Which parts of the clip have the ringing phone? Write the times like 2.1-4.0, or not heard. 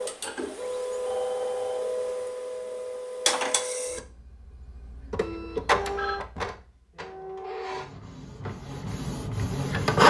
1.1-1.8, 5.5-6.2.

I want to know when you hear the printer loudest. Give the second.
10 s.